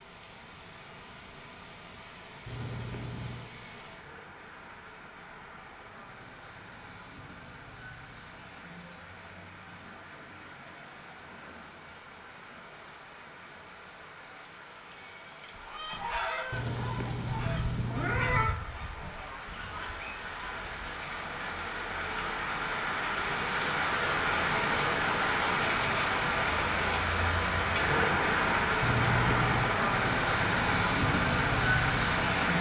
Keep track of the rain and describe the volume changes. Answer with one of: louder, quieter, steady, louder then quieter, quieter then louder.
louder.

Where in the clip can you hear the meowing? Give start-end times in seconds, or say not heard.
2.5-3.5, 16.5-18.5, 28.8-29.8.